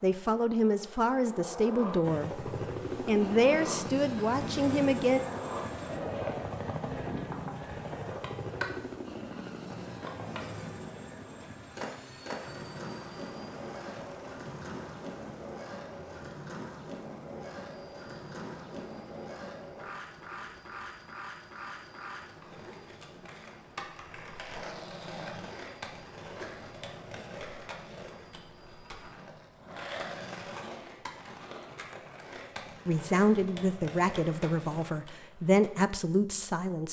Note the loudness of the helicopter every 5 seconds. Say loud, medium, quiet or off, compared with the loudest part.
loud, loud, medium, quiet, quiet, quiet, off, off.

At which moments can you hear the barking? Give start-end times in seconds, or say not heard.
not heard.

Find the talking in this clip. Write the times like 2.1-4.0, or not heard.
0.0-2.4, 3.0-5.2, 32.9-36.8.